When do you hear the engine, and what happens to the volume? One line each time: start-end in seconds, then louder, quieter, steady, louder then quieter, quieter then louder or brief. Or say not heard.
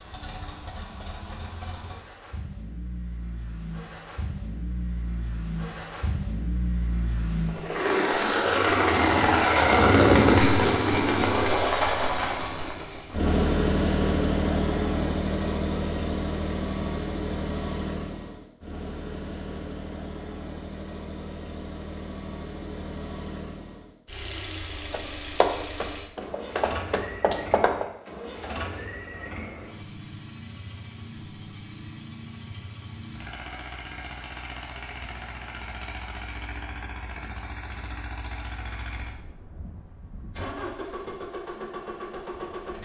0.0-42.8 louder then quieter.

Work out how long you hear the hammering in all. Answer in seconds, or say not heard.
3 s.